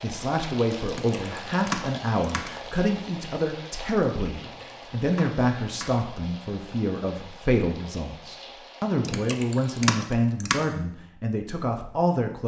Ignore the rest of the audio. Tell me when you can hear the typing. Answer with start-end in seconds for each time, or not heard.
0.8-2.5, 4.3-6.0, 9.0-10.6.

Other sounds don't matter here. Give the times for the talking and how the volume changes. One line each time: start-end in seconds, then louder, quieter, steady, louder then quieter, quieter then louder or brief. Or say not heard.
0.0-12.4 steady.